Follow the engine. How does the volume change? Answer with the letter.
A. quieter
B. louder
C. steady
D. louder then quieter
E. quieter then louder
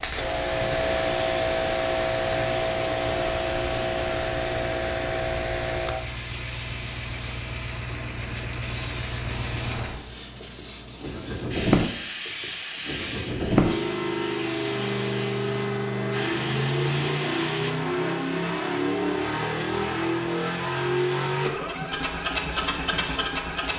B.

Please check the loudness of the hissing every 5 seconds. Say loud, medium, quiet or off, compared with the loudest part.
loud, medium, medium, medium, quiet.